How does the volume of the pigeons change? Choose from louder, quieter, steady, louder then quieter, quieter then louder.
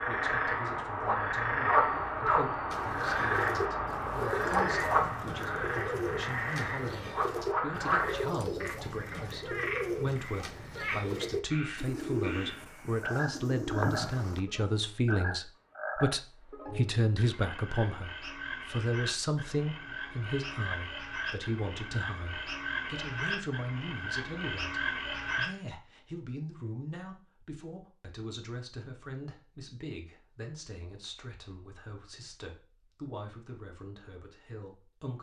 steady.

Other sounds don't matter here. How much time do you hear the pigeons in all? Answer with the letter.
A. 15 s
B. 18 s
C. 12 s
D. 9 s
C.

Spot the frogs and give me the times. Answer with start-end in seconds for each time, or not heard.
0.0-25.5.